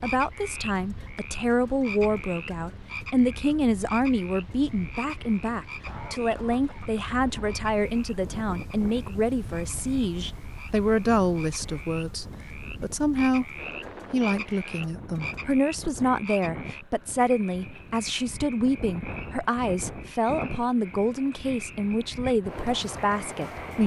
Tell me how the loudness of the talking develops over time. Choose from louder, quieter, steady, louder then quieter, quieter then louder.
steady.